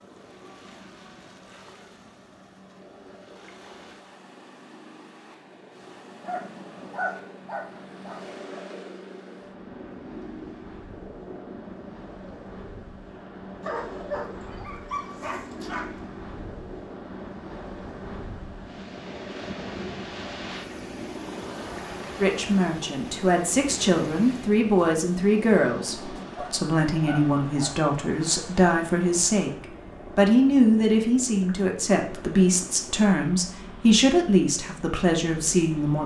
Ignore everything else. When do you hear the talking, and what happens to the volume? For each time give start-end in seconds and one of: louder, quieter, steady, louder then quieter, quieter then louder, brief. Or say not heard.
22.2-36.0 steady.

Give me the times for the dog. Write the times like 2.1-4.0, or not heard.
6.2-8.2, 13.6-16.1, 26.3-27.8.